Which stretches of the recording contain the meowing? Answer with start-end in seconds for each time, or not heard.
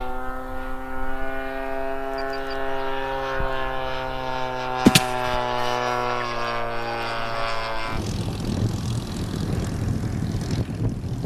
4.8-6.4.